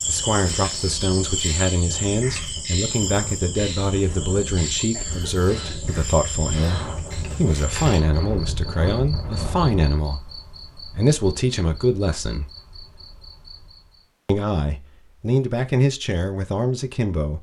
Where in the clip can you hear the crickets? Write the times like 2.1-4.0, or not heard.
0.0-14.1.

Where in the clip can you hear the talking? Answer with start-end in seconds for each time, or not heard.
0.1-12.4, 14.2-17.3.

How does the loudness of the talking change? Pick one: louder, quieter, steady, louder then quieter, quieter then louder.
steady.